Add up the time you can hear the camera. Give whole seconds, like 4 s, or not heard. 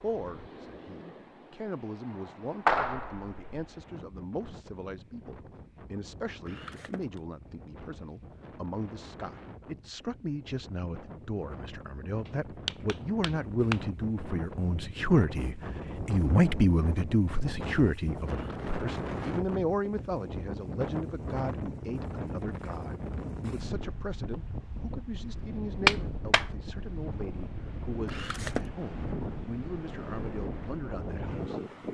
2 s.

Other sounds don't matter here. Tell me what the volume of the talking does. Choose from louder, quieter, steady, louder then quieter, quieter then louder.
louder then quieter.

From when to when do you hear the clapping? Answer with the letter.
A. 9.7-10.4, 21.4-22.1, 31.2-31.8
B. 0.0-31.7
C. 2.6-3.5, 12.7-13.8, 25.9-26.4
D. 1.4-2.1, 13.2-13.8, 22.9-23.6
C.